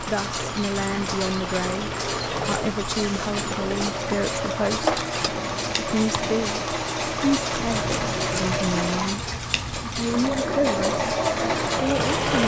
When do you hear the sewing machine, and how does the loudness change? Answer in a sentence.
The sewing machine can be heard from 0.2 to 12.4 s, getting louder.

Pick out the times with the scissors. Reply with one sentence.
You can hear the scissors from 7.5 to 8.8 s.